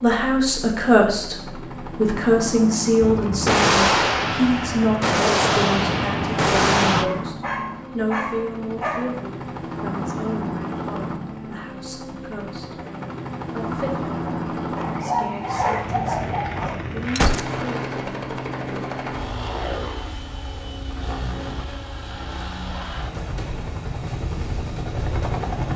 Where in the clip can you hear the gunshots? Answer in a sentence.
The gunshots can be heard from 3.0 to 7.1 s and from 17.1 to 17.6 s.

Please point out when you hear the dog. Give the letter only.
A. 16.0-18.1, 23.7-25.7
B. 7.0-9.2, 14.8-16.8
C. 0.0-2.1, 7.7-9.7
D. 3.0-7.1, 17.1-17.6
B.